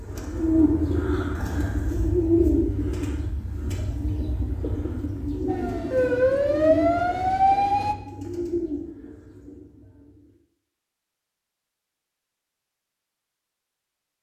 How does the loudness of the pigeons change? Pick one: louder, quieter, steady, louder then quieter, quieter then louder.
quieter.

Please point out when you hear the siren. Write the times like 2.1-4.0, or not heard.
5.5-8.0.